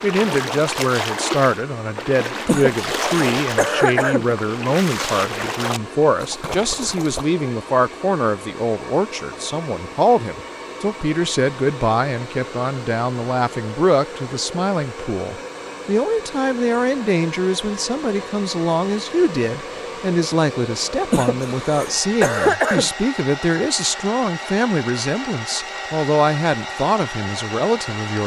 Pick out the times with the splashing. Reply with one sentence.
You can hear the splashing from 0.0 to 7.2 s.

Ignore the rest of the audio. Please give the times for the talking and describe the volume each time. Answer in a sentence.
You can hear the talking from 0.0 to 28.2 s, at a steady volume.